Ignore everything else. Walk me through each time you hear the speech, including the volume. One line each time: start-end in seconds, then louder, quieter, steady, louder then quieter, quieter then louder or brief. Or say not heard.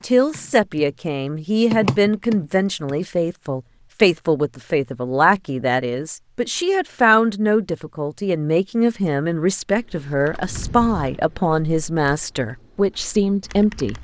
0.0-13.9 steady.